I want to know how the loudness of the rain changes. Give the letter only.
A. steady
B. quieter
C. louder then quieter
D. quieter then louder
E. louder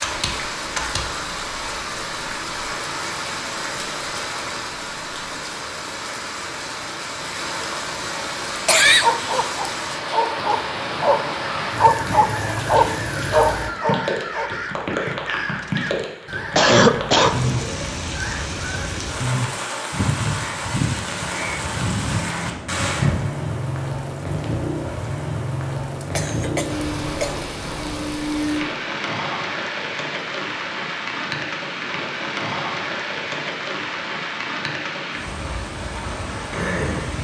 A.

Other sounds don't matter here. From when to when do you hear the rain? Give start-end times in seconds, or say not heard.
0.0-37.1.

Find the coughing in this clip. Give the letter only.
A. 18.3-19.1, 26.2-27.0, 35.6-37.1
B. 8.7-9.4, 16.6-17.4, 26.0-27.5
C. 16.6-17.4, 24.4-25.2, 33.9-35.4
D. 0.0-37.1
B.